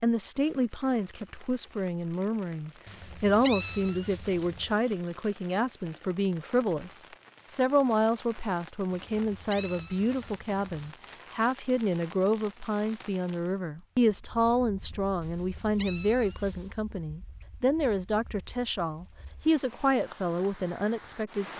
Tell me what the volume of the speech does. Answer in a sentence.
The loudness of the speech stays about the same.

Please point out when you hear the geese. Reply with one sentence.
The geese can't be heard in this clip.